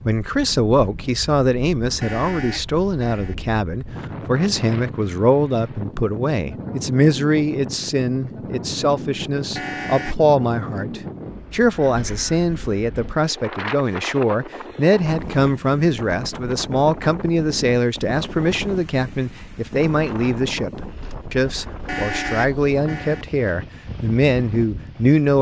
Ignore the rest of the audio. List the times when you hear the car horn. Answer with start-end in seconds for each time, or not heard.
2.0-3.4, 9.6-10.3, 21.9-23.2.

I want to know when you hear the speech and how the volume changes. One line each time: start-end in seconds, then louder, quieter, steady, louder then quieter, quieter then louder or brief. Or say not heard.
0.0-25.3 steady.